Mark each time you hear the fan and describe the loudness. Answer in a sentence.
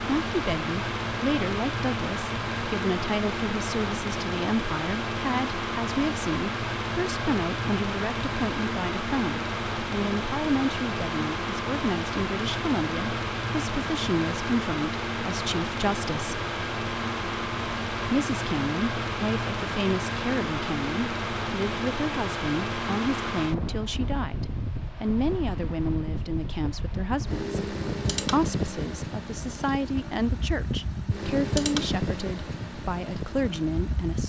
The fan can be heard from 0.0 to 34.2 s, at a steady volume.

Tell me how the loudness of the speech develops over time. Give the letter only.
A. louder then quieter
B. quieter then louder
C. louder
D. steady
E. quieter
D.